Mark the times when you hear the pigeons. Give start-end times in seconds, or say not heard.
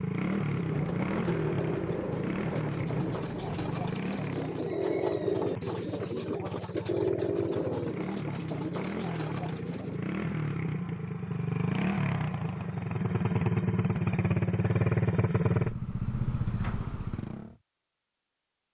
0.2-10.0.